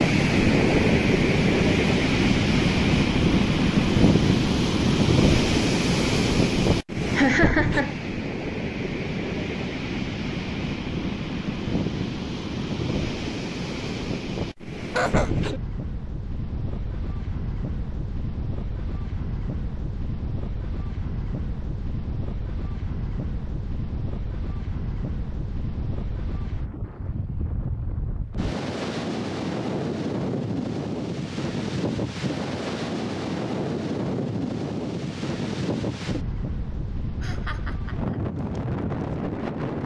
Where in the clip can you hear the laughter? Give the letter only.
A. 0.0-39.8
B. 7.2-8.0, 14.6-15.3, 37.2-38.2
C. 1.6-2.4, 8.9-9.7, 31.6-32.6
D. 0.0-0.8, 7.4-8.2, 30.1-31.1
B.